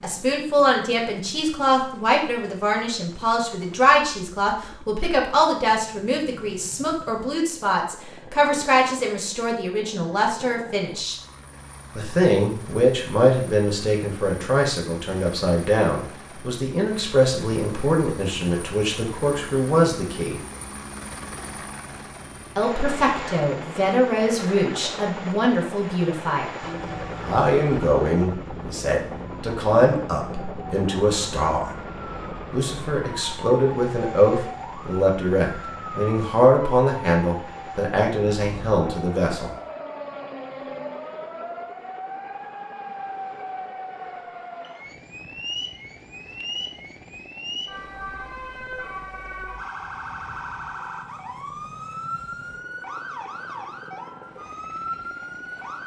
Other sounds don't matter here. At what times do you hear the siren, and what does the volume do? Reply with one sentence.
The siren can be heard from 26.6 to 55.8 s, at a steady volume.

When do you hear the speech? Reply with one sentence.
The speech can be heard from 0.0 to 11.2 s, from 11.9 to 20.4 s, from 22.6 to 26.5 s, from 27.2 to 31.6 s and from 32.5 to 39.5 s.